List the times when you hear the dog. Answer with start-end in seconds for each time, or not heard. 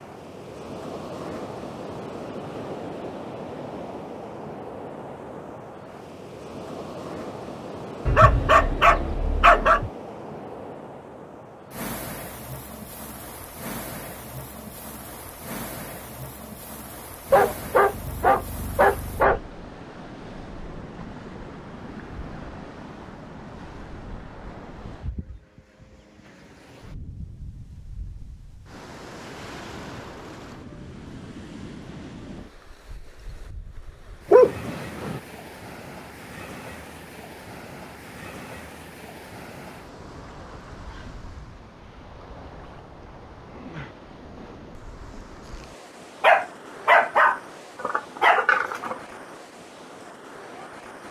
8.1-9.9, 17.3-19.4, 34.3-35.2, 46.2-49.0.